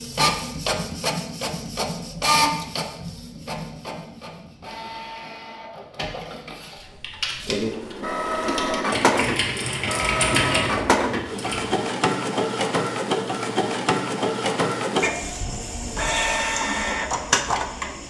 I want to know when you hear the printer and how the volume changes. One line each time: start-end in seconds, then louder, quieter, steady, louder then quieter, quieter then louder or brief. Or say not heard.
0.0-18.0 quieter then louder.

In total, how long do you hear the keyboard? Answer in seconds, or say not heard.
5 s.